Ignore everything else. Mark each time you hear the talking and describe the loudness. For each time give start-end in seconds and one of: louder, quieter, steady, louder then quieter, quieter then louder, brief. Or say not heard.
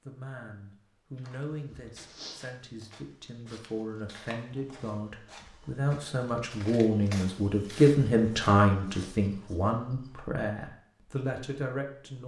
0.1-12.2 louder then quieter.